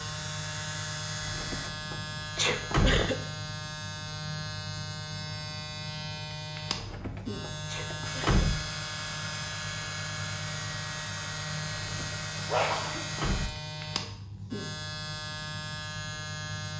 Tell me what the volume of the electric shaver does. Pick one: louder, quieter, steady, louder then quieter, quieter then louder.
steady.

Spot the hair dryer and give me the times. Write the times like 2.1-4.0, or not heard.
0.0-1.7, 8.0-13.5.